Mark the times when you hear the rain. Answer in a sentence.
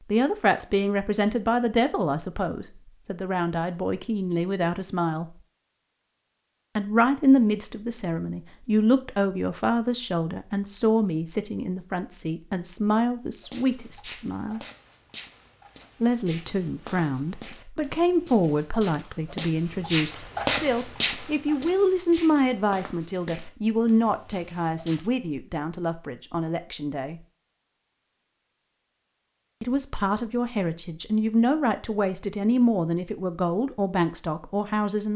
The rain can't be heard in this clip.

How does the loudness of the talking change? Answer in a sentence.
The loudness of the talking stays about the same.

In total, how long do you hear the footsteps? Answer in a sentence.
The footsteps can be heard for 12 seconds in total.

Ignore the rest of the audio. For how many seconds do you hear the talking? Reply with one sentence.
You can hear the talking for 30 seconds altogether.